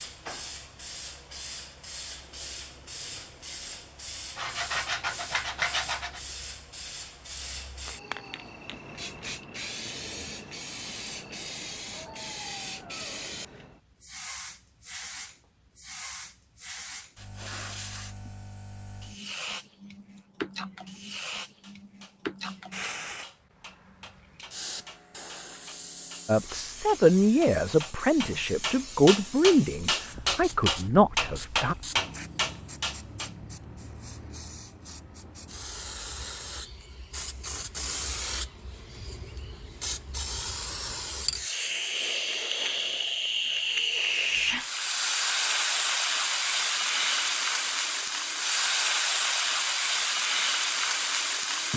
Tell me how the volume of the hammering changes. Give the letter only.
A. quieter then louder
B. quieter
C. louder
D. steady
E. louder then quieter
C.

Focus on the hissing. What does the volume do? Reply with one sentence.
The loudness of the hissing goes up.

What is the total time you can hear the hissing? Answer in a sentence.
You can hear the hissing for 52 seconds altogether.